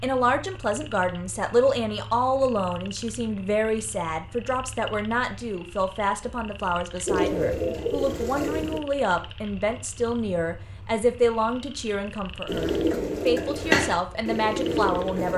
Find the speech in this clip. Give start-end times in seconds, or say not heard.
0.0-15.3.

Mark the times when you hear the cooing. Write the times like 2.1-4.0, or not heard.
7.0-8.8, 12.4-15.3.